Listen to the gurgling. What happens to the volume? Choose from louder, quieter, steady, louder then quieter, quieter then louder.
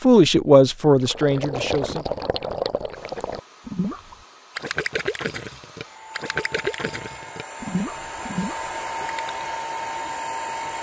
steady.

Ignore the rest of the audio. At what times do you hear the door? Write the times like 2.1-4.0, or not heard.
not heard.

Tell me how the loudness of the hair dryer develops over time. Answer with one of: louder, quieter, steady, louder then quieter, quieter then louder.
louder.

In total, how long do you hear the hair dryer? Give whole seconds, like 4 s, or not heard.
8 s.